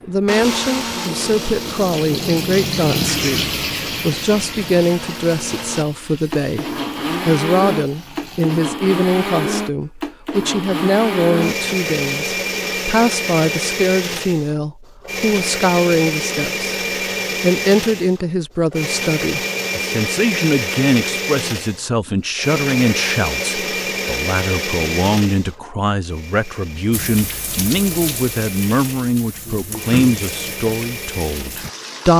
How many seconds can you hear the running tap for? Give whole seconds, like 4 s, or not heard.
14 s.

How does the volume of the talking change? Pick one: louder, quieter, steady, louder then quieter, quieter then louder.
steady.